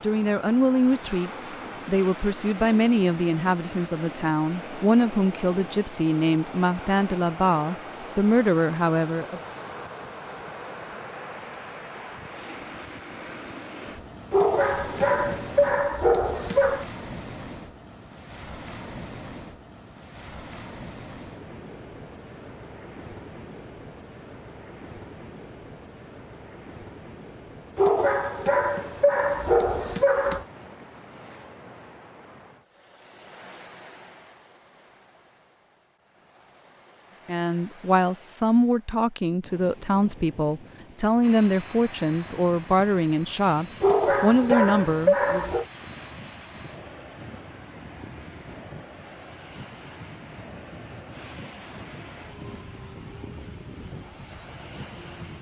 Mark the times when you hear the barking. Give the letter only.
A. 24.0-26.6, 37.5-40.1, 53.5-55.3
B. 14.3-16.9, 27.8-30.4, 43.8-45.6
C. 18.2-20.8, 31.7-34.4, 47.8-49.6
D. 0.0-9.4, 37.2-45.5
B.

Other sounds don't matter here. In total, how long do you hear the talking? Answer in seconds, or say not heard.
18 s.